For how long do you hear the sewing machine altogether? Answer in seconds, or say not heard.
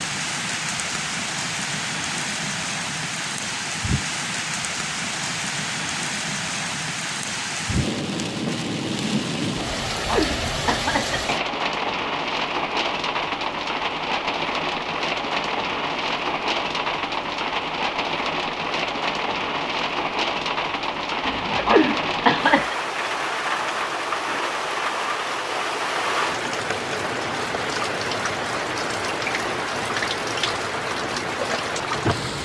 not heard.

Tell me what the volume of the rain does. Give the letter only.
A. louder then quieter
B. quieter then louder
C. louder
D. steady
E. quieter
D.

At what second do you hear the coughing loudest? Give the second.
22 s.